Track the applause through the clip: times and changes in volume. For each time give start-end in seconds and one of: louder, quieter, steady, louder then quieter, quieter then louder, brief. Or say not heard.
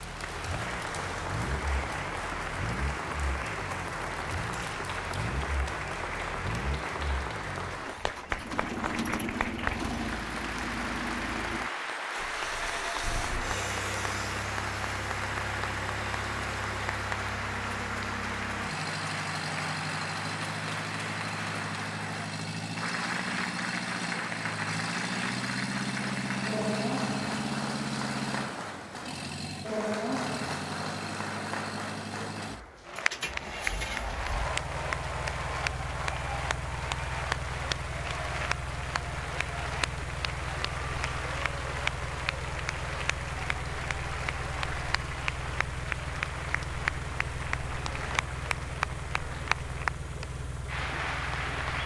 0.0-51.8 steady.